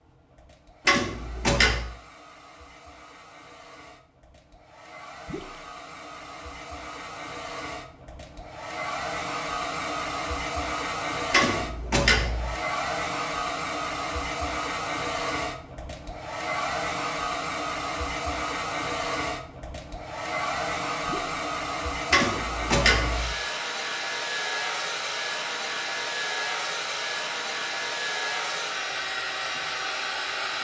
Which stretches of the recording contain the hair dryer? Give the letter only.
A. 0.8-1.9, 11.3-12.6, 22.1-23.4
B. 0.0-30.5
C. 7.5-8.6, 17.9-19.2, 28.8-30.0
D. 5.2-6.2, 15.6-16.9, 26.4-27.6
B.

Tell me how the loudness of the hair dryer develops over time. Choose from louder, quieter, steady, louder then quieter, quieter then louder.
louder.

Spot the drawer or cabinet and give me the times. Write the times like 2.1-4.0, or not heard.
0.8-1.9, 11.3-12.6, 22.1-23.4.